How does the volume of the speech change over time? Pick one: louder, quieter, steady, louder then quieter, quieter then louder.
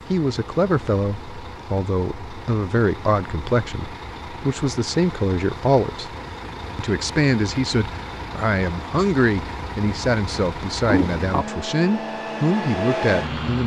steady.